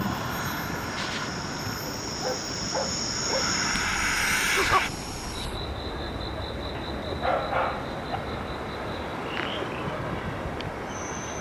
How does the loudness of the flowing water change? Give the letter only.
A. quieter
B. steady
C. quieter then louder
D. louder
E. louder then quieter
B.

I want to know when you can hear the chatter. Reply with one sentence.
The chatter can't be heard in this clip.